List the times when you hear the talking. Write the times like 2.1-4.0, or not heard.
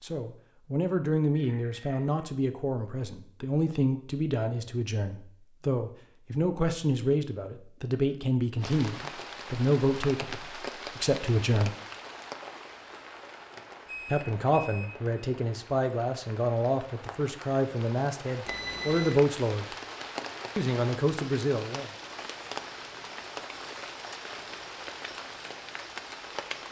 0.0-11.7, 14.1-19.6, 20.6-21.9.